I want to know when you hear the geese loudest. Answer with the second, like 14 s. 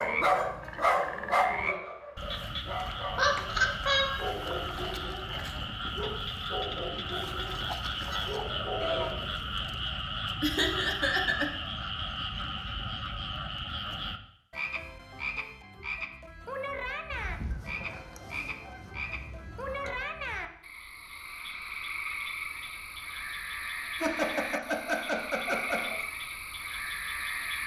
9 s.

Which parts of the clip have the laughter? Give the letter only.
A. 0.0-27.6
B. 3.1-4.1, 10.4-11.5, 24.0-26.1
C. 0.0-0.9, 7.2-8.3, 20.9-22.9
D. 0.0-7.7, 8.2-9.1
B.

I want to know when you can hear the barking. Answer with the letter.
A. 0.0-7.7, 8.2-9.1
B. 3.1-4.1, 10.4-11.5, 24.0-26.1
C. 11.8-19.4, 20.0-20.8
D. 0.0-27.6
A.